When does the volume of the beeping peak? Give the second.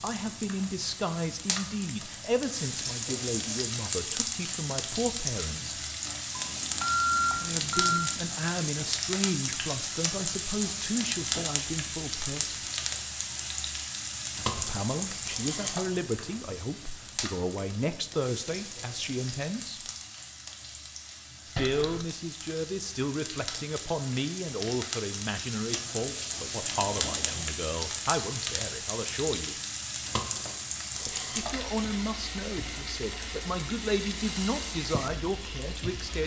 7 s.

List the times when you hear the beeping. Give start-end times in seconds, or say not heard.
6.3-8.0, 21.6-22.1, 25.7-27.5.